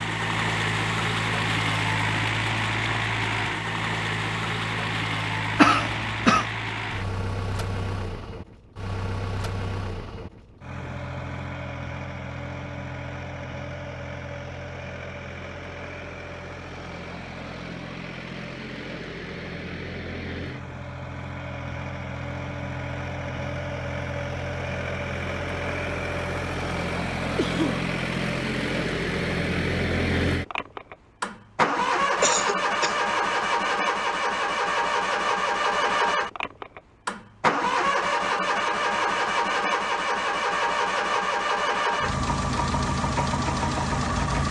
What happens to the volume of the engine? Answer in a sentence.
The volume of the engine goes down, then up.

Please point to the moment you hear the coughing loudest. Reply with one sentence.
The volume of the coughing peaks at 6 seconds.